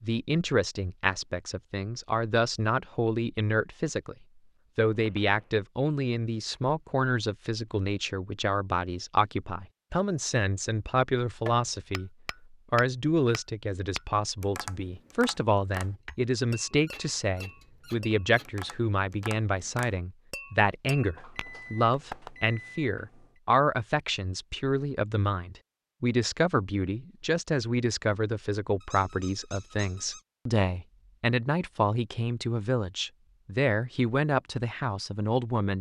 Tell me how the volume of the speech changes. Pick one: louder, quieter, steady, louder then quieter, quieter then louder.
steady.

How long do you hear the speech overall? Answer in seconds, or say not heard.
35 s.